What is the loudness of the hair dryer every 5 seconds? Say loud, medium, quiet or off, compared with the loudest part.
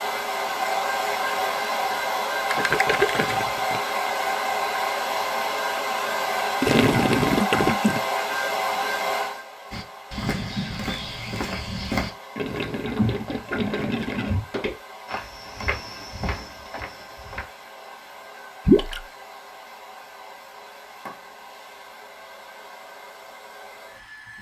loud, loud, quiet, quiet, quiet.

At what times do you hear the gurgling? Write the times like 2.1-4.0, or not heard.
2.5-3.8, 6.6-8.0, 12.3-14.4, 18.6-19.1.